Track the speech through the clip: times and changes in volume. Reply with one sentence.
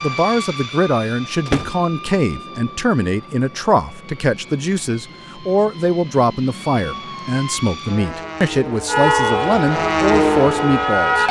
You can hear the speech from 0.0 to 11.2 s, at a steady volume.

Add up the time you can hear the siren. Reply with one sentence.
The siren can be heard for 2 seconds in total.